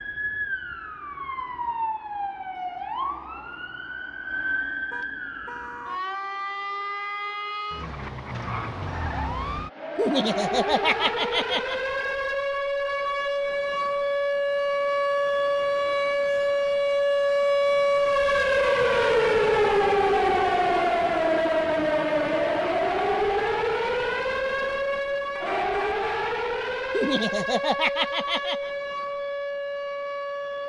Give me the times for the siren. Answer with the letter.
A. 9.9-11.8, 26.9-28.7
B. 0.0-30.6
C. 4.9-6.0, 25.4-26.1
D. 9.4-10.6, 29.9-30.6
B.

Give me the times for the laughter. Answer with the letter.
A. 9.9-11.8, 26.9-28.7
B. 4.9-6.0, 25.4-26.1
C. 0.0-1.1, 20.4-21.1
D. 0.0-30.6
A.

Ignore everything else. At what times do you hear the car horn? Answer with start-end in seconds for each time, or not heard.
4.9-6.0, 25.4-26.1.